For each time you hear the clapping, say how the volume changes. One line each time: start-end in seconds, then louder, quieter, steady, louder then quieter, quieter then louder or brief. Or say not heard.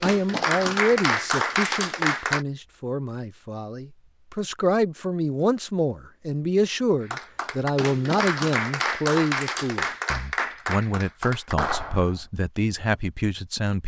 0.0-2.5 brief
7.0-12.3 steady.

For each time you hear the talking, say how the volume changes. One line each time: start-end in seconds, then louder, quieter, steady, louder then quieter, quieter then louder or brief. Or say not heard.
0.0-13.8 steady.